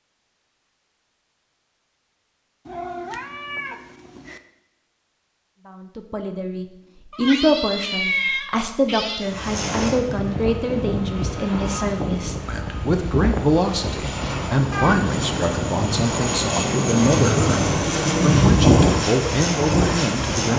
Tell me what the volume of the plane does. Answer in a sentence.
The loudness of the plane goes up.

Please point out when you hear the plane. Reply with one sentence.
The plane can be heard from 9.2 to 20.5 s.